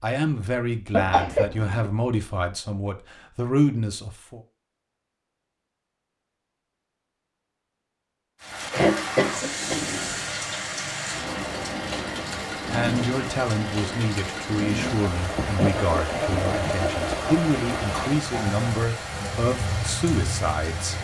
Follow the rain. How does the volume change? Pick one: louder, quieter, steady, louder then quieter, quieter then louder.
steady.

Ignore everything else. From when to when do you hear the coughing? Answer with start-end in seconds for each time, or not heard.
0.9-1.9, 8.7-9.8, 15.6-17.2.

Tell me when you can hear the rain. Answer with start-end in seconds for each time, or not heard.
8.4-20.9.